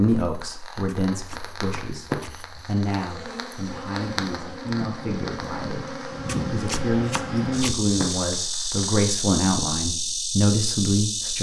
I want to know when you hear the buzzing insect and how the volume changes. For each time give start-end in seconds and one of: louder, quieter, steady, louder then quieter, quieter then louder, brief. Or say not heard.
3.0-11.3 louder.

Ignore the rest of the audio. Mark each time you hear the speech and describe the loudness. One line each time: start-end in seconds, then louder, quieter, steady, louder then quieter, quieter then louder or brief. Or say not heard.
0.0-11.3 louder.